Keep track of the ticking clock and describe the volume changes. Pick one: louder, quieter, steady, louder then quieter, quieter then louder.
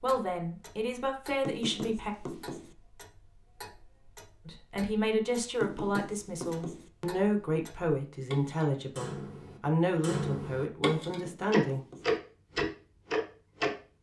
louder.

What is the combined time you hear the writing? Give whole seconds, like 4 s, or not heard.
4 s.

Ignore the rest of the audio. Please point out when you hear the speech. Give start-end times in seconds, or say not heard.
0.0-2.1, 4.5-11.8.